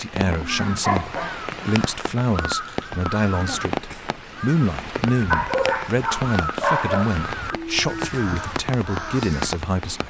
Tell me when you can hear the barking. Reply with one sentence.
You can hear the barking from 0.2 to 2.0 s and from 5.3 to 7.1 s.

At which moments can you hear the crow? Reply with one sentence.
You can hear the crow from 0.4 to 9.6 s.